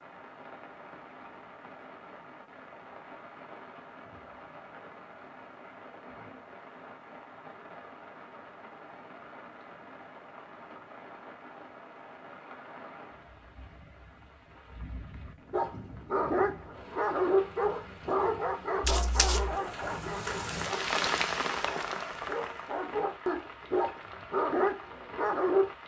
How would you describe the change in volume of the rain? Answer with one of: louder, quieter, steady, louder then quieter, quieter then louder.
louder.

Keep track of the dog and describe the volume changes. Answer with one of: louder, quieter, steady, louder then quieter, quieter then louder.
quieter then louder.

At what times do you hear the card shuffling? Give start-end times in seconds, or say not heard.
18.8-19.6.